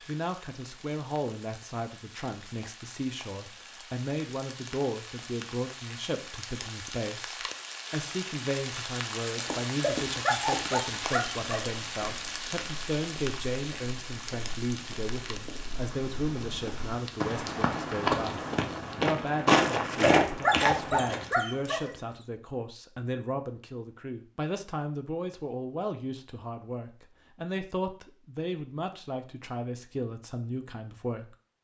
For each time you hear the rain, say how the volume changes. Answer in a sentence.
The rain can be heard from 0.0 to 19.1 s, getting louder then quieter.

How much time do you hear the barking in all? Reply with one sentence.
The barking can be heard for 4 seconds in total.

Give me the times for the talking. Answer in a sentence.
You can hear the talking from 0.0 to 31.4 s.